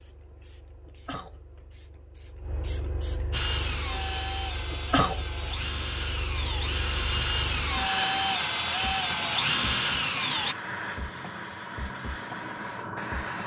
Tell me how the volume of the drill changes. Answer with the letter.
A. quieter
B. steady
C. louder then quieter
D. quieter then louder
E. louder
E.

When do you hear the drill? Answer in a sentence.
The drill can be heard from 3.3 to 10.6 s.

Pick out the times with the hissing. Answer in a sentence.
The hissing can be heard from 0.0 to 13.4 s.